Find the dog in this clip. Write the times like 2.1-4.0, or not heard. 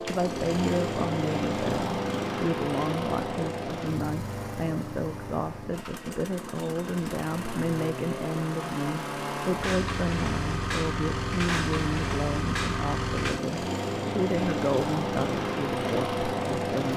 not heard.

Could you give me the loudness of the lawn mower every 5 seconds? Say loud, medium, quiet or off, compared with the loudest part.
loud, medium, loud, loud.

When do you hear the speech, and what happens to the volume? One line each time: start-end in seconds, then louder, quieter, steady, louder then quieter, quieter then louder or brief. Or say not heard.
0.0-16.9 steady.